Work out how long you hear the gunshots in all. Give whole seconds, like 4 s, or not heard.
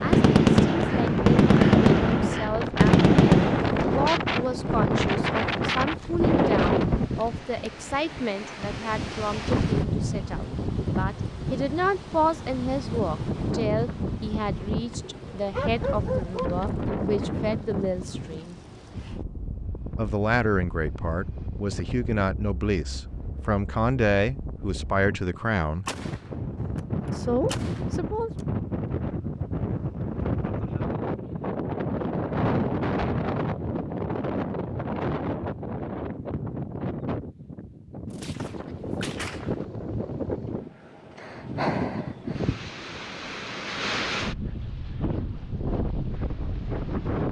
6 s.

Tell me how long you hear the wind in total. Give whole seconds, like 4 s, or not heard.
47 s.